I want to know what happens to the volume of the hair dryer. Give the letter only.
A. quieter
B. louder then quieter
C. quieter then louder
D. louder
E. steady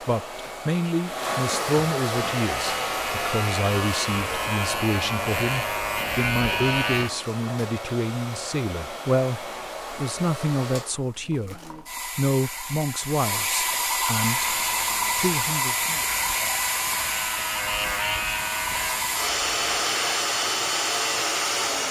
C.